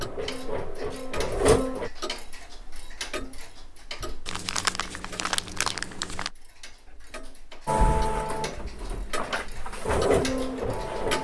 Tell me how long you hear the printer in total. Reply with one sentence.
You can hear the printer for 5 seconds altogether.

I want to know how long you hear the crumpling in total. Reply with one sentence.
The crumpling can be heard for 2 seconds in total.